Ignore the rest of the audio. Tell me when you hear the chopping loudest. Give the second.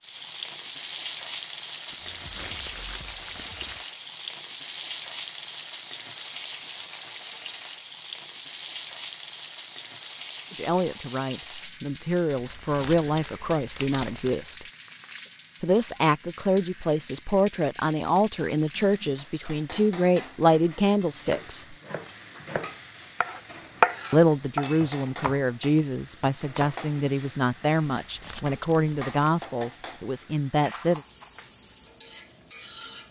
24 s.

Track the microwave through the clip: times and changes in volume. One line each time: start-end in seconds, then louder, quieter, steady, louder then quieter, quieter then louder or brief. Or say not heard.
not heard.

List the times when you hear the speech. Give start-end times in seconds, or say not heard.
10.5-14.7, 15.6-21.8, 24.1-31.0.